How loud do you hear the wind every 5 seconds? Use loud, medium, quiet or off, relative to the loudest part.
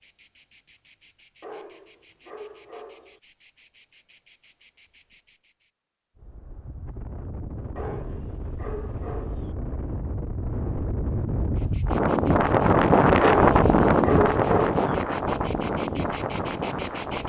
off, quiet, loud, medium.